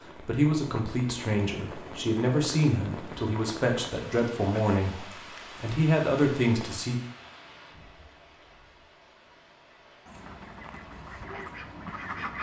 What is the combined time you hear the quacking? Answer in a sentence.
The quacking can be heard for 2 seconds in total.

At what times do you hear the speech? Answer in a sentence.
You can hear the speech from 0.0 to 7.0 s.